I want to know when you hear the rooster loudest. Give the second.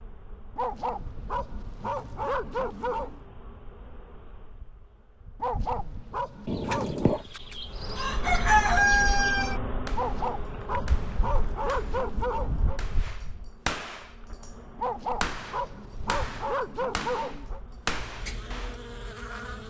9 s.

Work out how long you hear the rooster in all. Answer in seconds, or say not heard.
3 s.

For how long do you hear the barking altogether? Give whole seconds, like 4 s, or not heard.
10 s.